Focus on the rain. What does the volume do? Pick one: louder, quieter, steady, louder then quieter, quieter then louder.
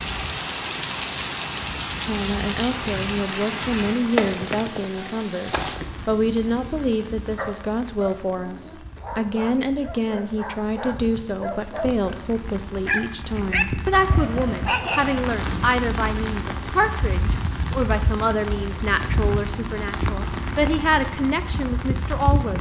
quieter then louder.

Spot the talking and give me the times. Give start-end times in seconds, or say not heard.
2.0-22.5.